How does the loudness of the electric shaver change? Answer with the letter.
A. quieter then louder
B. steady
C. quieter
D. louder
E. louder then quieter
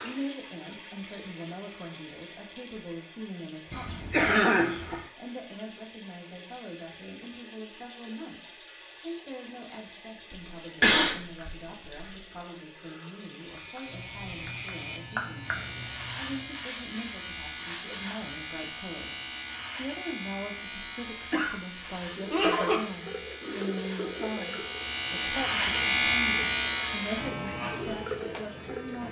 D.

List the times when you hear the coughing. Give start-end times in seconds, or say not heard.
3.7-5.0, 10.3-12.1, 21.3-22.9.